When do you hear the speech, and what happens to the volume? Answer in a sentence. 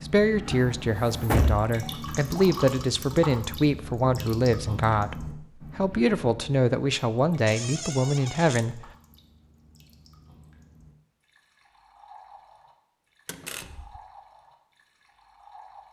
You can hear the speech from 0.0 to 8.8 s, at a steady volume.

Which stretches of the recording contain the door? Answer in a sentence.
You can hear the door from 0.5 to 1.6 s, from 7.5 to 8.7 s and from 13.2 to 14.0 s.